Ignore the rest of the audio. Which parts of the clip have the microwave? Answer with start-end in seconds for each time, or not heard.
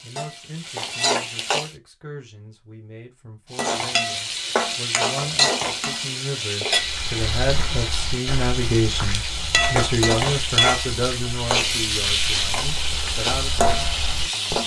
not heard.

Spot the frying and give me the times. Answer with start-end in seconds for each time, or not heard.
0.0-1.8, 3.5-14.6.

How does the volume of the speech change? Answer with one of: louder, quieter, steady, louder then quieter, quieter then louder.
louder then quieter.